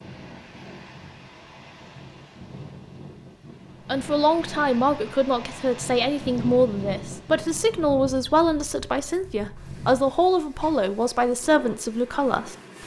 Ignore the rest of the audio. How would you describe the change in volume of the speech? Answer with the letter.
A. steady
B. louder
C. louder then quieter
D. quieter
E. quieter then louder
A.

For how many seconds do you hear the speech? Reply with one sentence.
The speech can be heard for 9 seconds in total.